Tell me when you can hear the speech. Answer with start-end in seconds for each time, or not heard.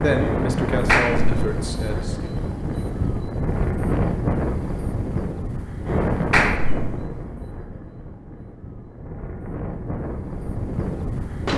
0.0-2.3.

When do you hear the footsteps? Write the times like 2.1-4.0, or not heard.
not heard.